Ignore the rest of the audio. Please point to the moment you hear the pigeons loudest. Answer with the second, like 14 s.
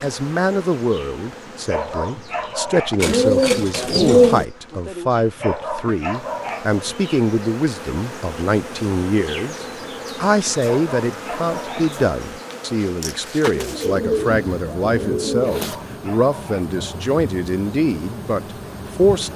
4 s.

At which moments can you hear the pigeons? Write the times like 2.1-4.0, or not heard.
3.0-4.5, 13.5-15.7.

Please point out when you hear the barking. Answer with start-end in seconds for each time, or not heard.
1.4-3.1, 5.2-6.8, 10.6-12.0, 15.4-17.0.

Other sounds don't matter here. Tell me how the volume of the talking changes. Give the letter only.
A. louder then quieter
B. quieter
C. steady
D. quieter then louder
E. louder
C.